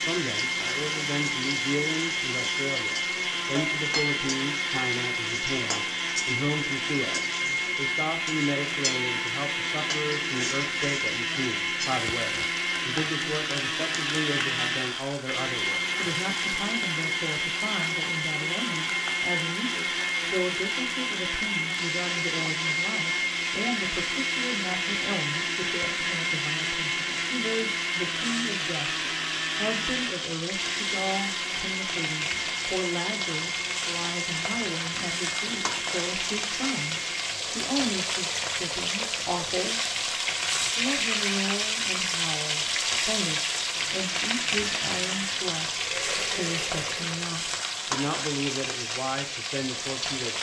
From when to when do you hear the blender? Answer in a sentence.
You can hear the blender from 0.0 to 37.4 s and from 43.9 to 47.2 s.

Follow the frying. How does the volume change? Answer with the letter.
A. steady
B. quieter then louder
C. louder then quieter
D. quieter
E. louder
E.